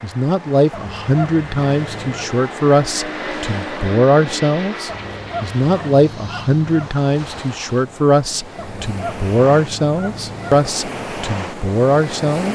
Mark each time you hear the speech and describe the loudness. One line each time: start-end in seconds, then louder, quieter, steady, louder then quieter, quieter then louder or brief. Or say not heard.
0.0-12.5 steady.